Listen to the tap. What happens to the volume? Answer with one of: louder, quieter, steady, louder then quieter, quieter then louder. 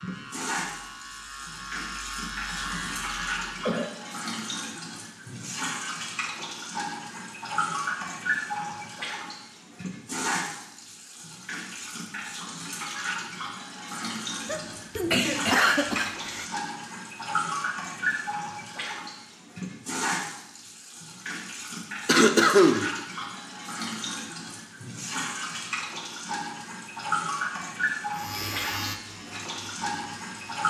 steady.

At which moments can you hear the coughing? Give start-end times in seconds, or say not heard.
2.5-4.0, 14.4-16.4, 22.1-22.9.